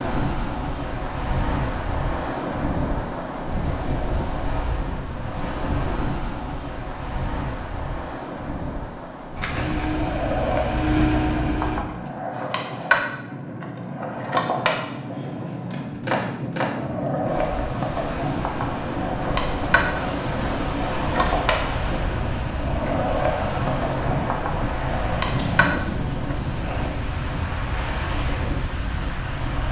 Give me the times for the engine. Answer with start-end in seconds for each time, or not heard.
9.5-11.8.